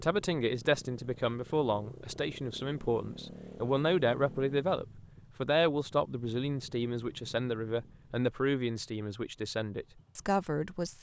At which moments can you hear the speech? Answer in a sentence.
You can hear the speech from 0.0 to 10.9 s.